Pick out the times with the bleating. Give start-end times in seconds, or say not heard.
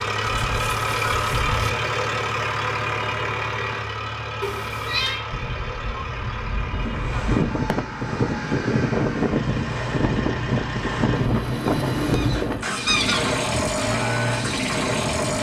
not heard.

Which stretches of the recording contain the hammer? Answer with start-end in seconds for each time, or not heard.
not heard.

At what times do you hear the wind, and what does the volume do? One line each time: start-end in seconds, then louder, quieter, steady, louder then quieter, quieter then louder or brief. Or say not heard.
6.7-15.3 quieter.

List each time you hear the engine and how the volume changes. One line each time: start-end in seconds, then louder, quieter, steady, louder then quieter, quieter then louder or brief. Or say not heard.
0.0-15.3 quieter then louder.